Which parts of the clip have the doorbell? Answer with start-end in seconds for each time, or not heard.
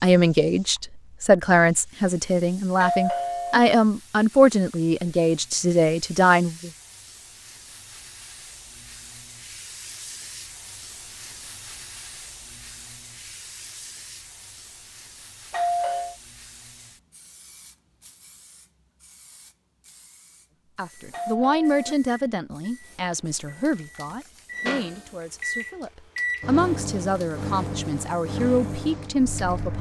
2.8-3.6, 15.5-16.1, 21.1-21.9.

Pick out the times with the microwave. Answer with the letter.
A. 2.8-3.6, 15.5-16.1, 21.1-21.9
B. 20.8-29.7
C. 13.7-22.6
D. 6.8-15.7
B.